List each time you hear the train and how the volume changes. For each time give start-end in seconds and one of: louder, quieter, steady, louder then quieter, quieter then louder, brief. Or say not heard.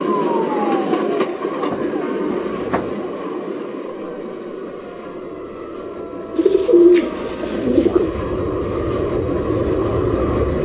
0.0-10.6 quieter then louder.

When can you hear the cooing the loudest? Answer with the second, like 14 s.
7 s.